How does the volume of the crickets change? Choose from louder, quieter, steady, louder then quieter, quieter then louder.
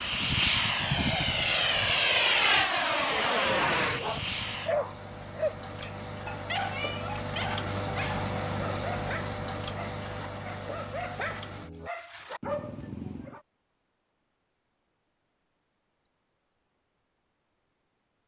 louder then quieter.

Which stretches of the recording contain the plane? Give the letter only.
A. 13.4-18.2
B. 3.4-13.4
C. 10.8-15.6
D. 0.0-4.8
D.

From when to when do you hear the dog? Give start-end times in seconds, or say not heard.
3.4-13.4.